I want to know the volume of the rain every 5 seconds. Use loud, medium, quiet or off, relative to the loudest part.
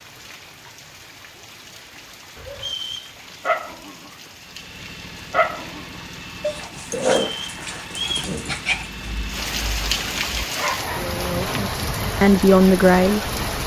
quiet, medium, loud.